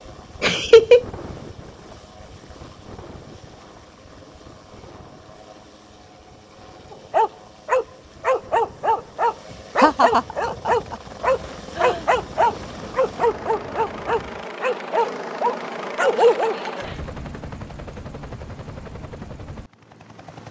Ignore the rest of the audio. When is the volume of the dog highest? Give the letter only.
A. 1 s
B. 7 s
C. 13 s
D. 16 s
D.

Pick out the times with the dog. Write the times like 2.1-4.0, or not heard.
6.9-16.7.